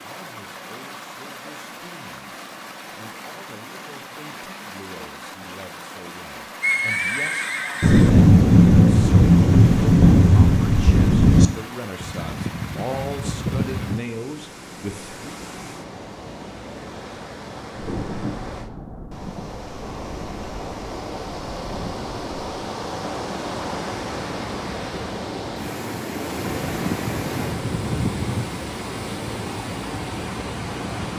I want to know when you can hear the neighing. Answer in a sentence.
The neighing can be heard from 6.6 to 8.1 s, from 12.0 to 14.0 s and from 26.4 to 28.4 s.